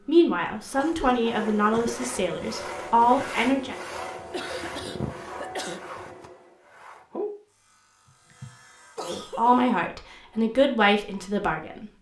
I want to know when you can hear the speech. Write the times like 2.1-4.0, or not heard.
0.1-3.8, 9.0-11.9.